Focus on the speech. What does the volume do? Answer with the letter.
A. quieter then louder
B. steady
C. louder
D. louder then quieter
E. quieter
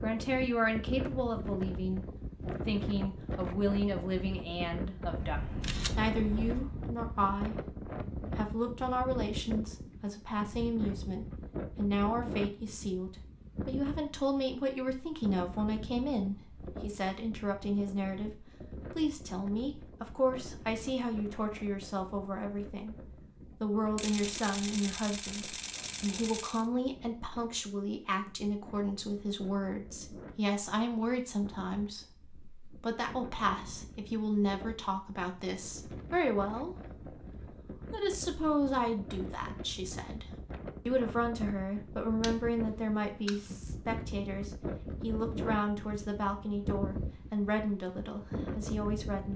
B.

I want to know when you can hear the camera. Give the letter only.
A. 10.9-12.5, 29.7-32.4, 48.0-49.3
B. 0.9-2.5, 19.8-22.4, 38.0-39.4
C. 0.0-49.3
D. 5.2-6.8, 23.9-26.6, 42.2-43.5
D.